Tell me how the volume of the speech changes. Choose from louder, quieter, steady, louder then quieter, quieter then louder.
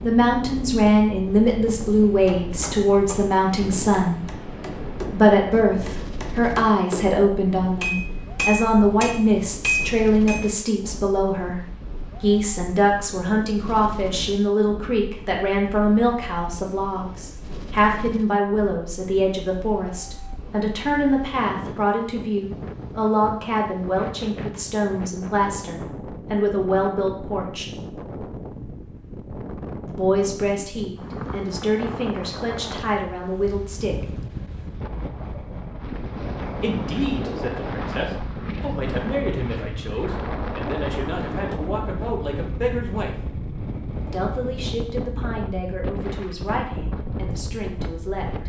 quieter.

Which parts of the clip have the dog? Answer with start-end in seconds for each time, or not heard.
not heard.